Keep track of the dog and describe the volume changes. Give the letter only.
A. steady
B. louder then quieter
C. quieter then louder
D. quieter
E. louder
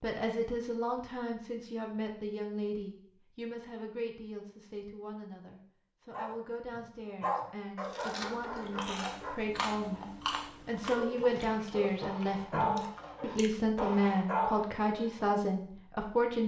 C.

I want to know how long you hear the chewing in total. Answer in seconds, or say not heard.
6 s.